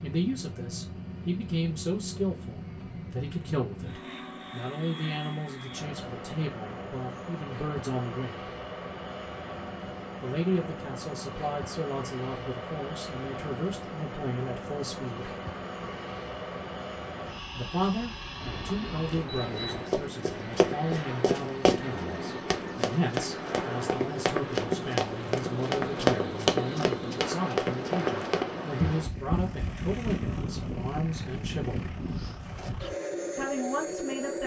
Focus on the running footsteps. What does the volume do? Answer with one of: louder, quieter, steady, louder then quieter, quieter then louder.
steady.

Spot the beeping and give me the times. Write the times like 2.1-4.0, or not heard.
18.4-19.9.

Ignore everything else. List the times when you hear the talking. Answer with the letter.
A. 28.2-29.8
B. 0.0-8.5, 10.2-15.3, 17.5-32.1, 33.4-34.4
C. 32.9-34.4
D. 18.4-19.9
B.